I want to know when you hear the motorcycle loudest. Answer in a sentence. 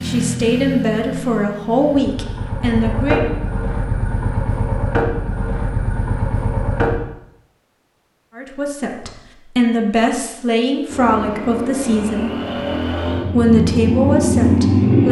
The loudest moment of the motorcycle is at 15 seconds.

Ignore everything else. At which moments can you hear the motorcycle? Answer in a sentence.
You can hear the motorcycle from 0.0 to 7.0 s and from 10.8 to 15.0 s.